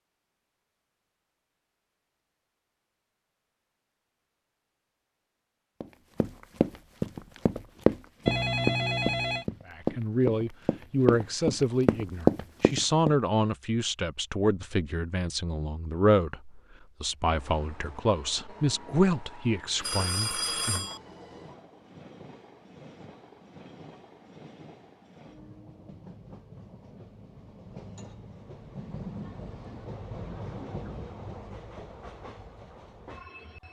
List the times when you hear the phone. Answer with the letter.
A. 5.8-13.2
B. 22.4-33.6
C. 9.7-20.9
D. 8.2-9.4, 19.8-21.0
D.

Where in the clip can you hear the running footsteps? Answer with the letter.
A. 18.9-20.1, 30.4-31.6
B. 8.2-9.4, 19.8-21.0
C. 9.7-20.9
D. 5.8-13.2
D.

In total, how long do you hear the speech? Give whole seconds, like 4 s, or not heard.
11 s.